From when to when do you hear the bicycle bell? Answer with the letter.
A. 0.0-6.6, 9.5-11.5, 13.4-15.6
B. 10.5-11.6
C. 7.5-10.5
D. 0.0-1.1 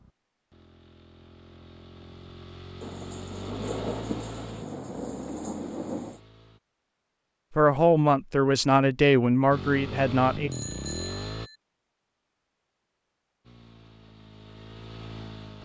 B.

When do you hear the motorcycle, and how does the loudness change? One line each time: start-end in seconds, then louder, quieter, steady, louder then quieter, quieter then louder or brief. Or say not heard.
0.0-6.6 louder then quieter
9.5-11.5 brief
13.4-15.6 brief.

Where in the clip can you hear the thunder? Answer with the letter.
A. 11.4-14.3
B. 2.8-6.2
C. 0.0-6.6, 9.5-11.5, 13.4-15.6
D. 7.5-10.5
B.